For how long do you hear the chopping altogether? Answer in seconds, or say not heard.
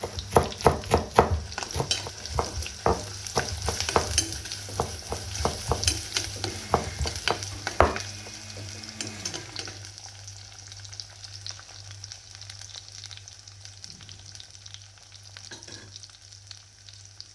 8 s.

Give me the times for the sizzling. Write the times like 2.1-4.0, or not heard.
0.0-17.3.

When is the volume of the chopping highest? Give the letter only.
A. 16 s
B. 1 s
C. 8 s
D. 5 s
B.